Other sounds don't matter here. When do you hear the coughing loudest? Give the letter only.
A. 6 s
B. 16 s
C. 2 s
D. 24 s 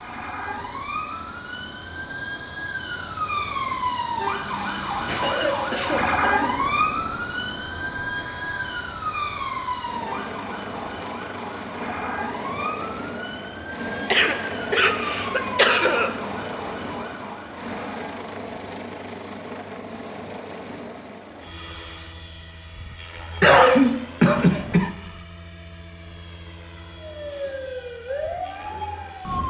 D.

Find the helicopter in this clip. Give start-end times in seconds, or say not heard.
0.0-29.4.